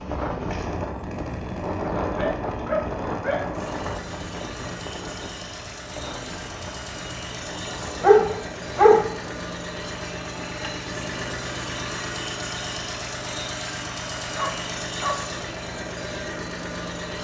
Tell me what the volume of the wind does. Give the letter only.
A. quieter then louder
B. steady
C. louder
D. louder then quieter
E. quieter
E.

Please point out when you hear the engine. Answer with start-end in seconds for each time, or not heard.
0.0-17.2.